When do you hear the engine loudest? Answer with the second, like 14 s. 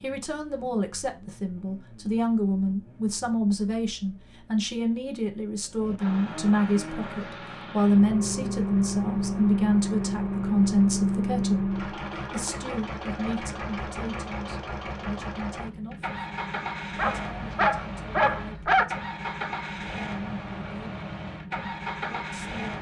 11 s.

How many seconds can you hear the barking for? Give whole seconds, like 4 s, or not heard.
2 s.